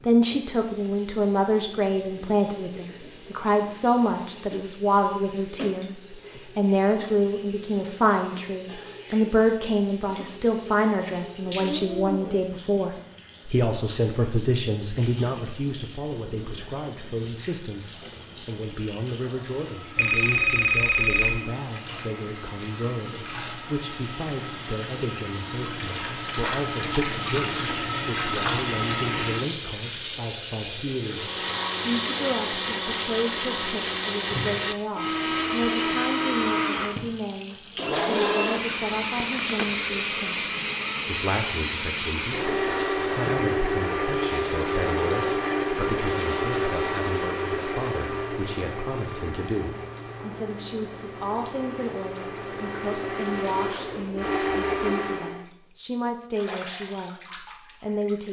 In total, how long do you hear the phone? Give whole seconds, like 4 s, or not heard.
2 s.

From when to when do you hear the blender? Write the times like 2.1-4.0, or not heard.
31.0-55.5.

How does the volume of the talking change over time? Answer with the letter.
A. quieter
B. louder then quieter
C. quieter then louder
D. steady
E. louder
A.